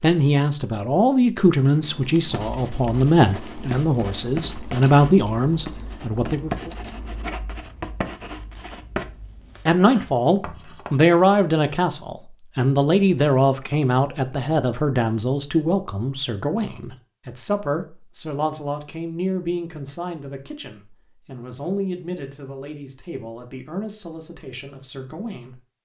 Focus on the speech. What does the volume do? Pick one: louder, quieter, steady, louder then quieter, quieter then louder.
quieter.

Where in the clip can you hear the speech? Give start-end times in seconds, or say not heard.
0.0-6.7, 9.7-25.6.